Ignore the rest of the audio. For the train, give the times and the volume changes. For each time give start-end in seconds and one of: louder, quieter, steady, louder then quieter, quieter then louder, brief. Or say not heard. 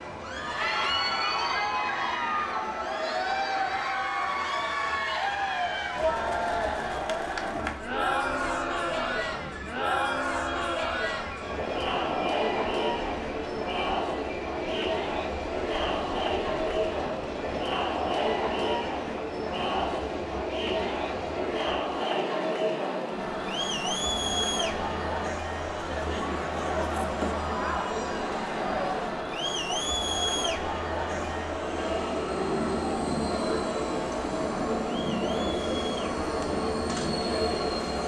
0.0-38.0 louder.